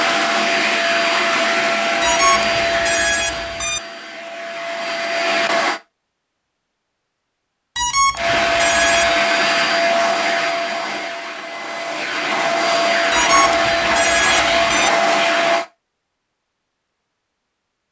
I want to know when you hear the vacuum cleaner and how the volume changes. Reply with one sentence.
The vacuum cleaner can be heard from 0.0 to 5.8 s, getting quieter then louder; and from 8.2 to 15.7 s, getting quieter then louder.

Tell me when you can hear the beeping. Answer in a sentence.
The beeping can be heard from 2.0 to 3.8 s, from 7.8 to 9.2 s and from 13.1 to 14.9 s.